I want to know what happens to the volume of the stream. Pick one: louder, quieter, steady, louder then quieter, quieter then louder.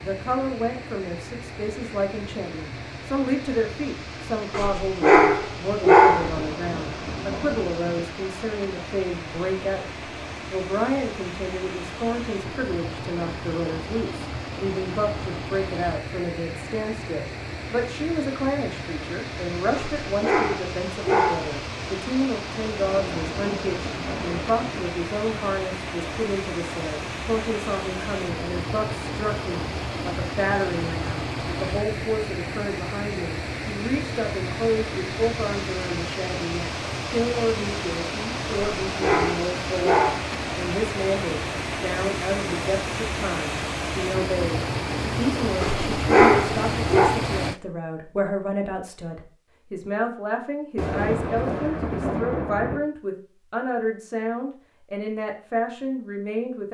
louder.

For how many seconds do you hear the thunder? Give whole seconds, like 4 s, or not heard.
6 s.